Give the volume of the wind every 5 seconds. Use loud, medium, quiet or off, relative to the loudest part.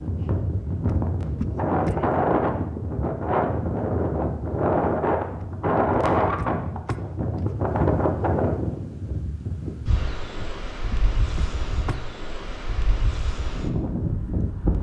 loud, loud, medium.